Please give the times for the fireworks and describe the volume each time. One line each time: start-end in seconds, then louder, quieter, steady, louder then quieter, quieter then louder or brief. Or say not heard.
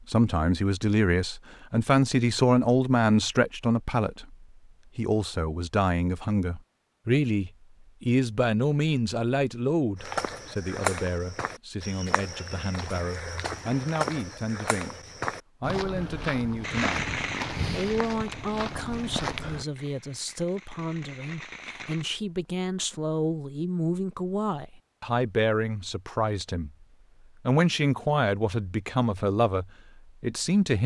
16.6-22.1 quieter then louder.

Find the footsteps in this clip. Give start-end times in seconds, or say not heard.
9.9-19.6.